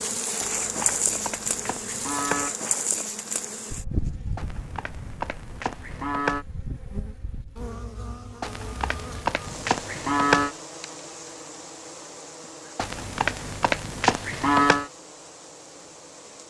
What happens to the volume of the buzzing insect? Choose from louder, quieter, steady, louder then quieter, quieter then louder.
quieter.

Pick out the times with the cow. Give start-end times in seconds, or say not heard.
0.4-2.5, 4.3-6.5, 8.4-10.5, 12.8-14.9.